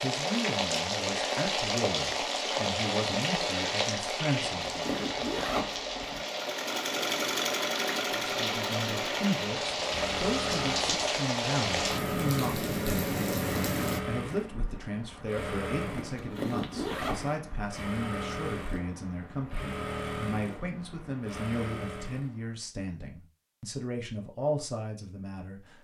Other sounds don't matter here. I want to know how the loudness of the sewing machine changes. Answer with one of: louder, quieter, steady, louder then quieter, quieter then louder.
quieter.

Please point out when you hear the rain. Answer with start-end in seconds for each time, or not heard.
0.0-14.0.